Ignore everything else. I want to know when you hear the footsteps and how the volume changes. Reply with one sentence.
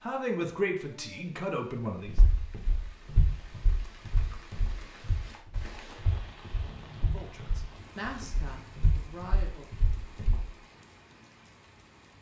You can hear the footsteps from 2.0 to 10.4 s, getting quieter then louder.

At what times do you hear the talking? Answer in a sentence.
The talking can be heard from 0.0 to 2.1 s and from 7.0 to 9.8 s.